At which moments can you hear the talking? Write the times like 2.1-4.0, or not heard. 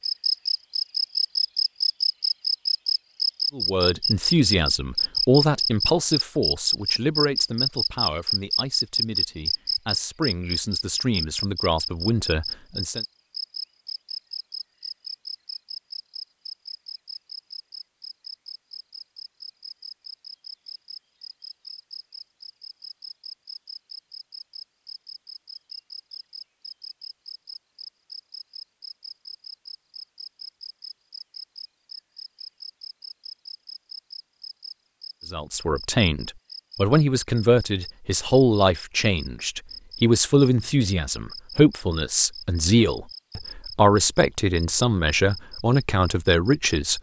3.5-13.0, 35.3-46.9.